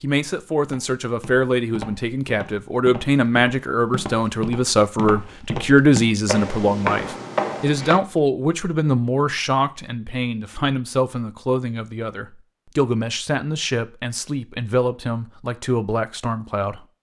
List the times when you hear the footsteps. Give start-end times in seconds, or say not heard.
0.6-8.0.